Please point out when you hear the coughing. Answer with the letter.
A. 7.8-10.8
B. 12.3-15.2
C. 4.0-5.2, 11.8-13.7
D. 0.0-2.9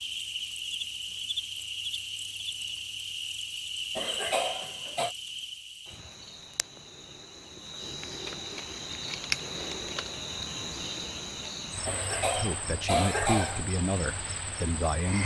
C.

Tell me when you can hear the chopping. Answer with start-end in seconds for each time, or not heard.
not heard.